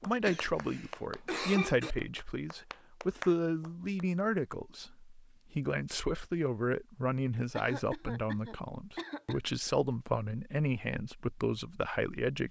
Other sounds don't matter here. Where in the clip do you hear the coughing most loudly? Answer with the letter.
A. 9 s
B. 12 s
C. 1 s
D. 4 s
C.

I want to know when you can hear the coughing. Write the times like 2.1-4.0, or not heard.
0.2-1.9, 7.5-9.4.